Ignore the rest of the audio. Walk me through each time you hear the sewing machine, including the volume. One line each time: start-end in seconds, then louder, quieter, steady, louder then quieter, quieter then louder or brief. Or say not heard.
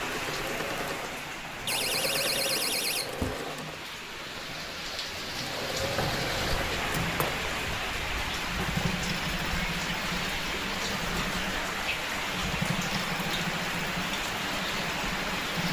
0.0-15.6 steady.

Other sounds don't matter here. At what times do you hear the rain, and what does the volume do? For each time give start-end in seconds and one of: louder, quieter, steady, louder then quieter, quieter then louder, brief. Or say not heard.
0.0-15.6 louder.